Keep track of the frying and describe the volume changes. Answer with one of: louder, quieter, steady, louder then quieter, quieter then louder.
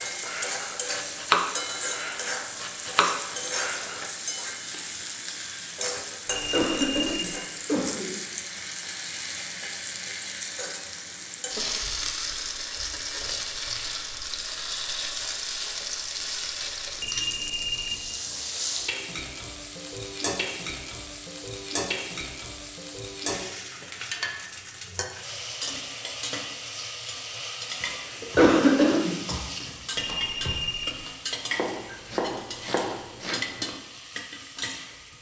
steady.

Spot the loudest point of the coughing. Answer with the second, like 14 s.
29 s.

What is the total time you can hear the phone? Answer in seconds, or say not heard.
3 s.